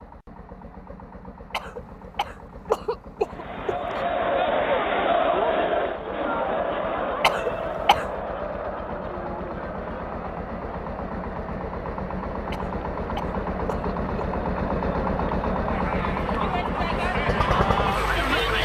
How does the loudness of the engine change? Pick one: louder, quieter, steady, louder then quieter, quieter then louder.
louder.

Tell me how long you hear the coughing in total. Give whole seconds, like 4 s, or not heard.
5 s.